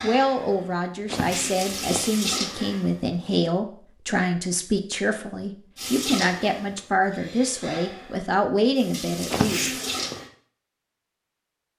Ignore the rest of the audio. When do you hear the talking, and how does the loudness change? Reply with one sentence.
You can hear the talking from 0.0 to 9.6 s, at a steady volume.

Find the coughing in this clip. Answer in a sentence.
You can hear the coughing from 1.1 to 2.0 s and from 9.3 to 10.2 s.